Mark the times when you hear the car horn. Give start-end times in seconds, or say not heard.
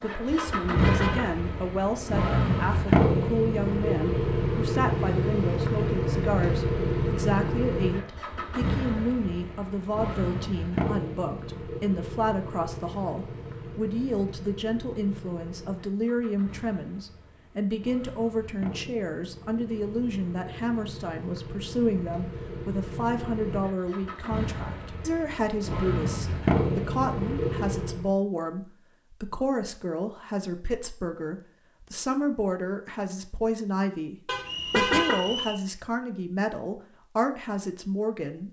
0.3-1.3, 34.2-35.4.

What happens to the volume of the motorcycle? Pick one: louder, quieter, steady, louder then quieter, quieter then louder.
quieter then louder.